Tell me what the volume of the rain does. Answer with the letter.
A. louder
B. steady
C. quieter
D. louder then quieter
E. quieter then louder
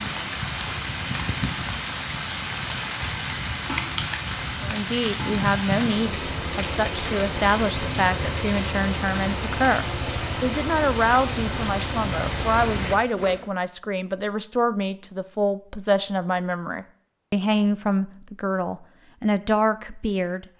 B.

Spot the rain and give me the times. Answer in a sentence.
The rain can be heard from 0.0 to 13.4 s.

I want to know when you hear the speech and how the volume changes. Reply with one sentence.
The speech can be heard from 4.6 to 20.4 s, at a steady volume.